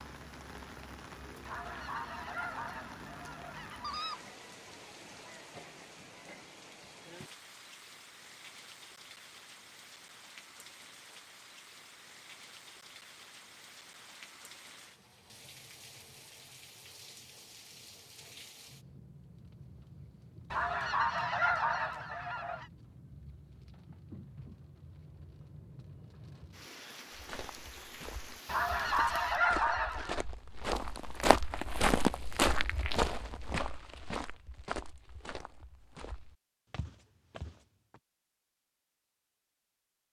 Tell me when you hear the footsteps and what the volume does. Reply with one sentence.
The footsteps can be heard from 27.1 to 38.0 s, getting louder then quieter.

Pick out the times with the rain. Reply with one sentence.
You can hear the rain from 0.0 to 29.4 s.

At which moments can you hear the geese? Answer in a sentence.
The geese can be heard from 1.4 to 4.2 s, from 20.5 to 22.6 s and from 28.4 to 30.2 s.